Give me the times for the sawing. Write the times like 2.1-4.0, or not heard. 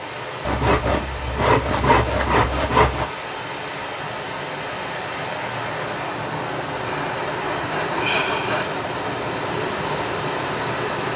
0.5-3.1, 7.0-8.8.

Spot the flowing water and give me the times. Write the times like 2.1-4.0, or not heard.
0.0-11.1.